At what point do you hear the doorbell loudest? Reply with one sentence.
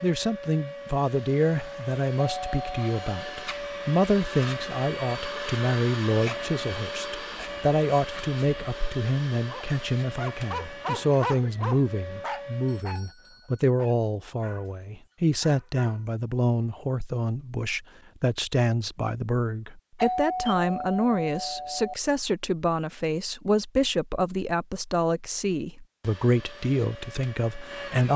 The volume of the doorbell peaks at 20 seconds.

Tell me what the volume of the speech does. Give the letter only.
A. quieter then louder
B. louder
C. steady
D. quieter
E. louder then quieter
C.